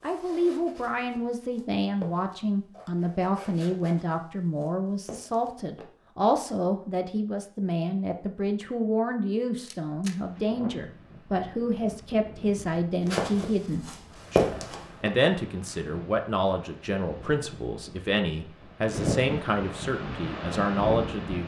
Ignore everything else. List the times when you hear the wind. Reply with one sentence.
The wind can be heard from 10.2 to 21.4 s.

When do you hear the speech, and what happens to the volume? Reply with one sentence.
The speech can be heard from 0.0 to 21.4 s, at a steady volume.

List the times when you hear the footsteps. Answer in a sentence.
You can hear the footsteps from 0.0 to 5.8 s and from 13.0 to 15.1 s.